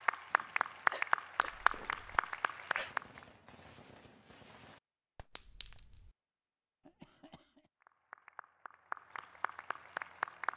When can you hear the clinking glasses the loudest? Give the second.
2 s.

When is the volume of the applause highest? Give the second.
1 s.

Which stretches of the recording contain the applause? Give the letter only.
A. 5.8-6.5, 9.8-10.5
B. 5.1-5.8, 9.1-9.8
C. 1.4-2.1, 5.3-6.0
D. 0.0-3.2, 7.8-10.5
D.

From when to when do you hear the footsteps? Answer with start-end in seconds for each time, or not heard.
not heard.